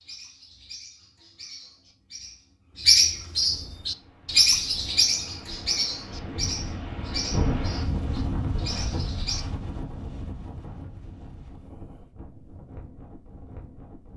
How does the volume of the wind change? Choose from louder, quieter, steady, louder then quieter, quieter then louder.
louder then quieter.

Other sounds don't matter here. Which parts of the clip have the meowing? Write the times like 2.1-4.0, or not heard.
not heard.